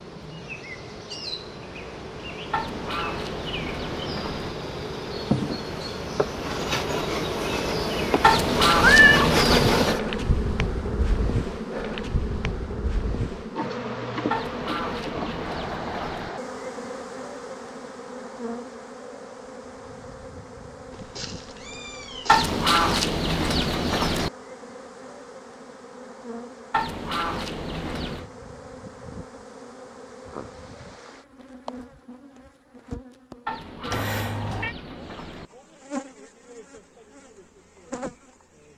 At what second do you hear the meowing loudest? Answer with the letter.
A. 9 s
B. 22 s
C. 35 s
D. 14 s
A.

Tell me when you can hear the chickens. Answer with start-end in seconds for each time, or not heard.
2.5-4.5, 8.2-9.9, 14.3-16.3, 22.2-24.3, 26.7-28.2, 33.5-35.5.